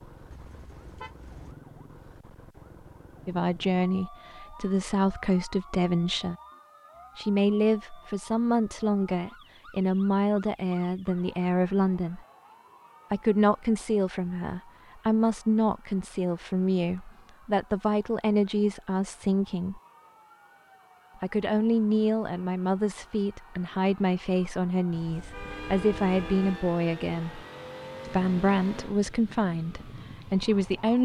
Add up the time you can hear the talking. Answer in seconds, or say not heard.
24 s.